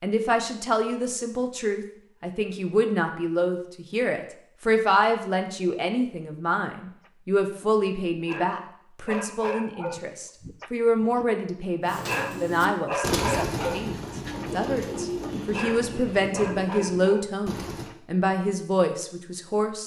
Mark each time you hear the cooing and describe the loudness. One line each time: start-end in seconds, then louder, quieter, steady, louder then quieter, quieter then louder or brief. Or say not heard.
11.8-17.9 quieter.